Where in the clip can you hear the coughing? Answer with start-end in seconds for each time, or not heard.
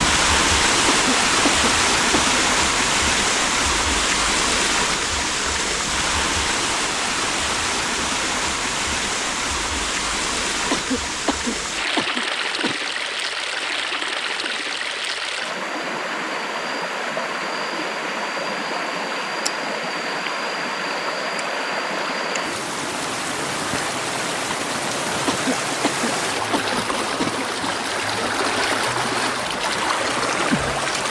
0.8-2.4, 10.7-12.8, 25.2-27.6.